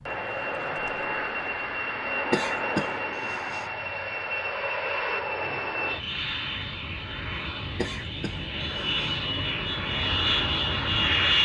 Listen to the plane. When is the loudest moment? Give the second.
11 s.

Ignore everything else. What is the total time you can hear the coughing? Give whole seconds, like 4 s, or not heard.
3 s.